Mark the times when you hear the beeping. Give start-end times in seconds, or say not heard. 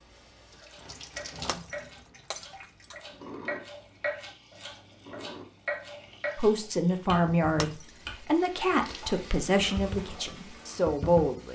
not heard.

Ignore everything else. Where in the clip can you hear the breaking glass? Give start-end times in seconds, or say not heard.
1.4-3.0, 7.6-8.0.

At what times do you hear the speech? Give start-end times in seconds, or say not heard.
6.3-11.5.